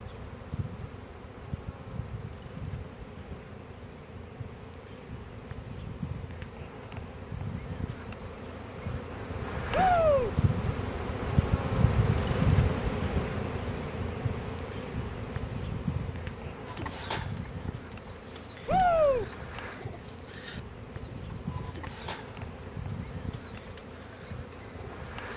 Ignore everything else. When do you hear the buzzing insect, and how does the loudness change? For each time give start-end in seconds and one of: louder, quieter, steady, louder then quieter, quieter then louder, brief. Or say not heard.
0.0-25.3 louder then quieter.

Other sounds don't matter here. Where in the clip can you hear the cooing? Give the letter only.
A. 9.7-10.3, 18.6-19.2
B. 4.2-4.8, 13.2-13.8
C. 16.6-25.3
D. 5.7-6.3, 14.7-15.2
C.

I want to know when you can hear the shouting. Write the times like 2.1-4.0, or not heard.
9.7-10.3, 18.6-19.2.